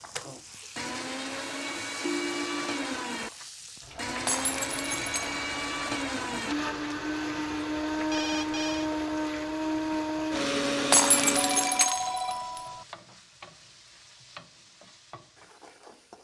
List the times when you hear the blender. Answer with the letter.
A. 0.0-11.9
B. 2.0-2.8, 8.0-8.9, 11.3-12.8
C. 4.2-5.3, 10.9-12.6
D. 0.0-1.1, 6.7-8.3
A.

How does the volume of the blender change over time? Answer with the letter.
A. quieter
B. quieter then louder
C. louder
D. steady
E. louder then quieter
C.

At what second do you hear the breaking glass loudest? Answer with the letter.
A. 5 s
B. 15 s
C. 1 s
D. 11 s
D.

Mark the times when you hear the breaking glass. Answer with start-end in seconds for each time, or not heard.
4.2-5.3, 10.9-12.6.